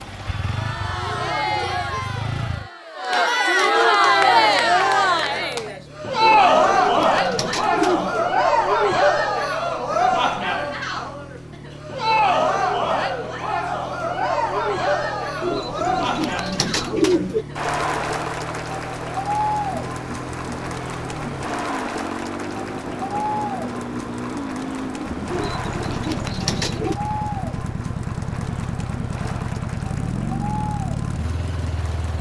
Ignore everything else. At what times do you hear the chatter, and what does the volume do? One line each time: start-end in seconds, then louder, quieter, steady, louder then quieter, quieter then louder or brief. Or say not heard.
0.2-32.1 quieter.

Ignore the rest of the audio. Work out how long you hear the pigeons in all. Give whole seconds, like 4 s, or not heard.
6 s.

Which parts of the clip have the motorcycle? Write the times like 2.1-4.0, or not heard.
0.0-2.7, 3.9-32.1.